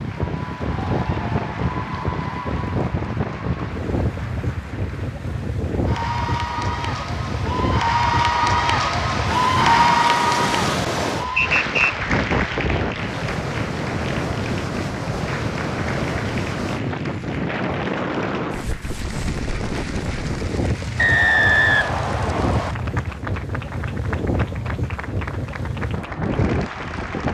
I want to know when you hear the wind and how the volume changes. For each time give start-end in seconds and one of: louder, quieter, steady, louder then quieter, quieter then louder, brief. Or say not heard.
0.0-27.2 steady.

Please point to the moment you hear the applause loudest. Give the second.
10 s.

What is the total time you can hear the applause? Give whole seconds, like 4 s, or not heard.
27 s.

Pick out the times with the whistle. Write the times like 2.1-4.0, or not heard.
11.3-11.9, 20.9-22.8.